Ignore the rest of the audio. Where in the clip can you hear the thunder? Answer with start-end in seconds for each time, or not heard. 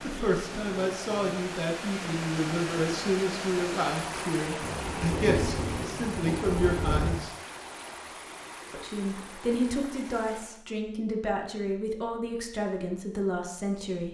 4.6-7.2.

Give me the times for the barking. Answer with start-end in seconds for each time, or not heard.
not heard.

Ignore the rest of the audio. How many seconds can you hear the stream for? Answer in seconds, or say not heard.
11 s.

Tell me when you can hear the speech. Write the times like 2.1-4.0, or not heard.
0.0-7.3, 8.7-14.0.